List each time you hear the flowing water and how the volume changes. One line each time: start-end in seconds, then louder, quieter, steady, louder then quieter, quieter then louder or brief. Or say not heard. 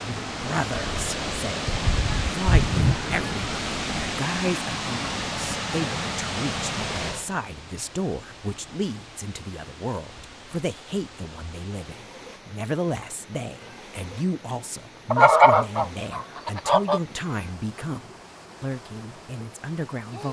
0.0-20.2 quieter.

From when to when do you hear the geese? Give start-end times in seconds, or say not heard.
1.6-3.5, 15.1-17.0.